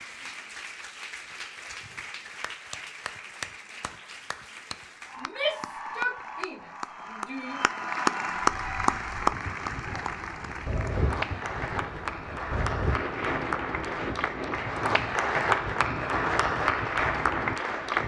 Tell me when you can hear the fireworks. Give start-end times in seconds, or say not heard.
not heard.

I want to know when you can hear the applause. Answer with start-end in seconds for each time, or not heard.
0.0-18.0.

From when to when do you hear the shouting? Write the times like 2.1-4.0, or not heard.
5.2-7.7.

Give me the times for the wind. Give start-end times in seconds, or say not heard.
8.4-18.0.